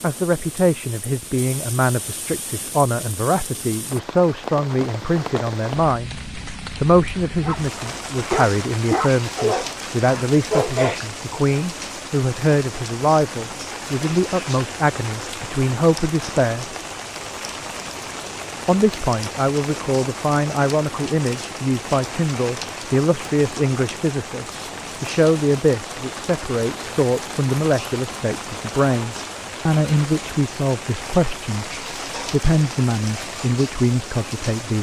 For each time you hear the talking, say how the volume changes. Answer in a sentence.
You can hear the talking from 0.0 to 16.7 s, at a steady volume; and from 18.6 to 34.7 s, at a steady volume.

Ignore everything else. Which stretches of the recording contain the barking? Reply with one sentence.
The barking can be heard from 7.4 to 11.1 s.